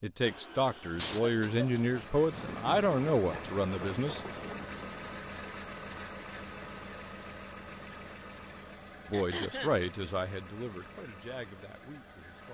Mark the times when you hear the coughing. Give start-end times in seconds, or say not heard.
0.9-2.0, 9.1-9.8.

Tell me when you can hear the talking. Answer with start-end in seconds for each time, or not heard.
0.0-4.2, 9.1-12.4.